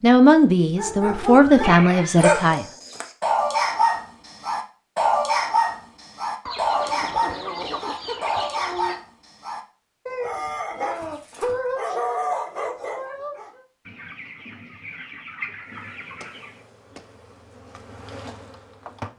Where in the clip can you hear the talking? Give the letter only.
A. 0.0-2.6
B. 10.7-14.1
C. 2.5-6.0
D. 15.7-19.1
A.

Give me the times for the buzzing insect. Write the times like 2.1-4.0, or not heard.
15.7-19.1.